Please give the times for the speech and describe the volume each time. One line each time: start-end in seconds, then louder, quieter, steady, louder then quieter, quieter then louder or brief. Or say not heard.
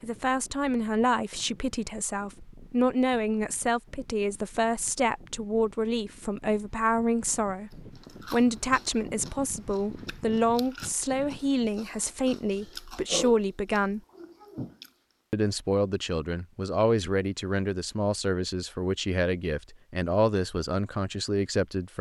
0.0-14.0 steady
15.3-21.9 steady.